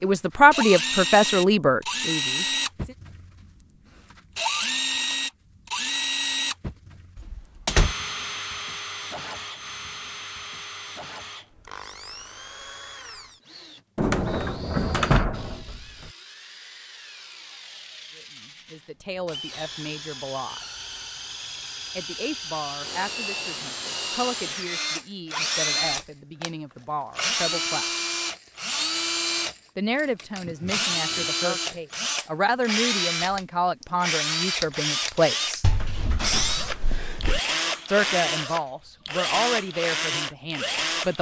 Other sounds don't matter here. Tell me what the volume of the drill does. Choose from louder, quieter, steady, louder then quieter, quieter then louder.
quieter then louder.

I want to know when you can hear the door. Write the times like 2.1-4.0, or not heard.
7.2-8.0, 13.9-16.1, 35.6-37.4.